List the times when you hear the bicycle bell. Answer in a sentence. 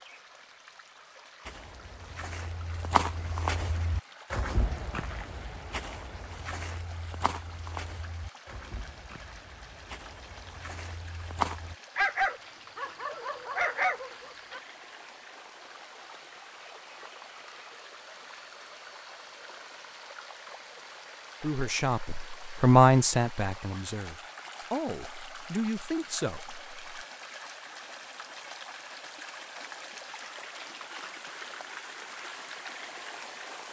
The bicycle bell can't be heard in this clip.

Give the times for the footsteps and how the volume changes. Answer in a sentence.
You can hear the footsteps from 1.4 to 11.8 s, getting quieter.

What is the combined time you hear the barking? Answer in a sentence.
You can hear the barking for 3 seconds altogether.